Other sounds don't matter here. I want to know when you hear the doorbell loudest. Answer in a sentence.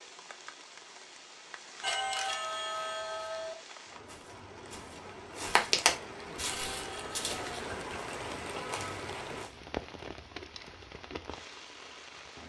The loudest moment of the doorbell is at 2 seconds.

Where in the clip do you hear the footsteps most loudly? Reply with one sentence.
The volume of the footsteps peaks at 6 seconds.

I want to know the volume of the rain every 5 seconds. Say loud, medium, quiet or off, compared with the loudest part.
medium, loud, medium.